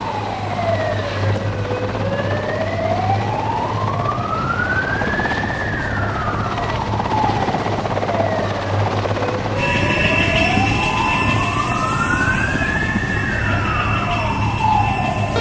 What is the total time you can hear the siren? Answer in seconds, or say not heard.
15 s.